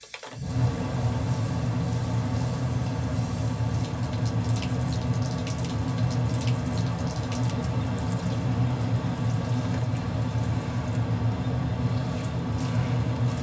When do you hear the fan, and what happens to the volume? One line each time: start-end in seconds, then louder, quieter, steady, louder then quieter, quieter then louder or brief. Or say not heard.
0.0-13.3 steady.